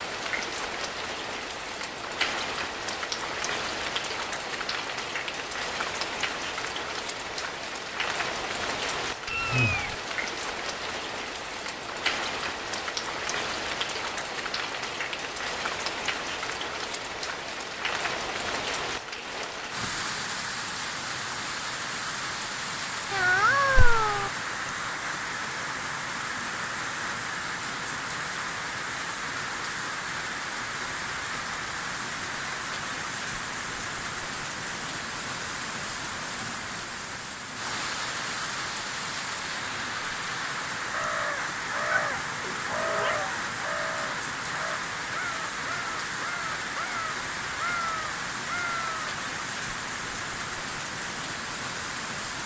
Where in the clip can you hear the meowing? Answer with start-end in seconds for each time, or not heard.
9.2-9.9, 23.1-24.3, 41.9-43.4.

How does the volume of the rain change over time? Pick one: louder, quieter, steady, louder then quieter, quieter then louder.
steady.